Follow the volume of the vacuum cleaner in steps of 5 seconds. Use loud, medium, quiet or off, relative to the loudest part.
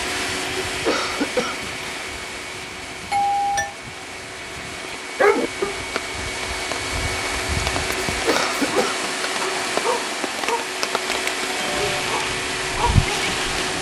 medium, loud, loud.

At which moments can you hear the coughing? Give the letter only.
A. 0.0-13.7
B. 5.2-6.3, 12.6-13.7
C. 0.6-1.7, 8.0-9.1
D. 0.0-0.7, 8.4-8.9
C.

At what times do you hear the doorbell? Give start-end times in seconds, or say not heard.
3.1-3.8, 11.5-12.1.